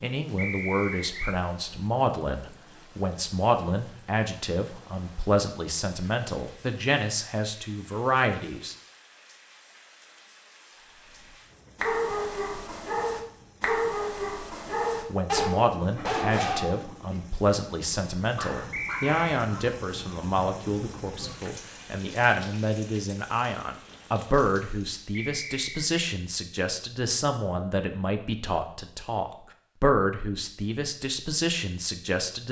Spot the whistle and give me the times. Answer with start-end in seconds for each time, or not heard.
0.3-1.4, 18.7-19.2, 25.1-25.9.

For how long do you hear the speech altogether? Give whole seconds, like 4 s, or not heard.
26 s.